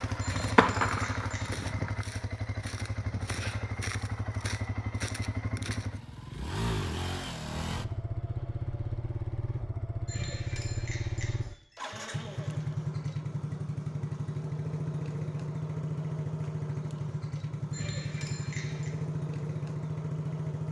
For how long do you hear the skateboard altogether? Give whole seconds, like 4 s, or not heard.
2 s.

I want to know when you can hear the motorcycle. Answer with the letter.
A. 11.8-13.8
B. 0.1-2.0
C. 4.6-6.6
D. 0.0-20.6
D.